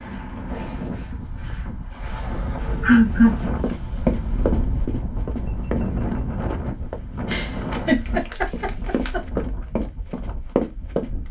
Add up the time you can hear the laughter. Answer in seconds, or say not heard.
3 s.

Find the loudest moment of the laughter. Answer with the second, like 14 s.
3 s.